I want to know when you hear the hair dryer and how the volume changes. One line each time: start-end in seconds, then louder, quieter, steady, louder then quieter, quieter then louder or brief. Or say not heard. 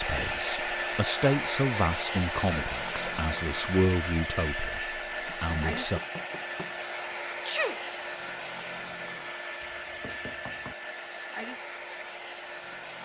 0.0-13.0 quieter.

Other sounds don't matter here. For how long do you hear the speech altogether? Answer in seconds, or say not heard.
6 s.